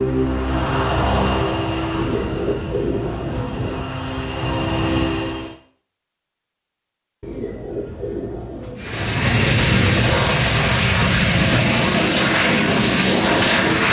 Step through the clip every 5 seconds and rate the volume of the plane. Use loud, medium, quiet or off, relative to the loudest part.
medium, loud, loud.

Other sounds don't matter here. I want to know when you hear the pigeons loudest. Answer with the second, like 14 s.
3 s.